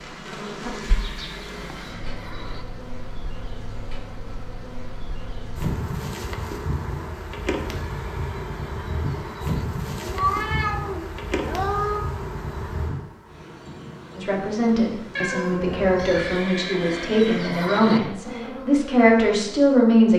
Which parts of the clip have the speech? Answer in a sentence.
The speech can be heard from 14.2 to 20.1 s.